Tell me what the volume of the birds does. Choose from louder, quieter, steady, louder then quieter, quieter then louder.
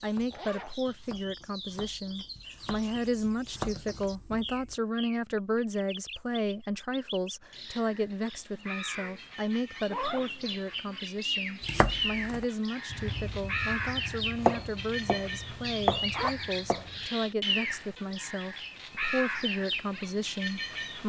louder.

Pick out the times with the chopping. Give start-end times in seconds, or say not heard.
0.0-4.8, 11.6-17.1.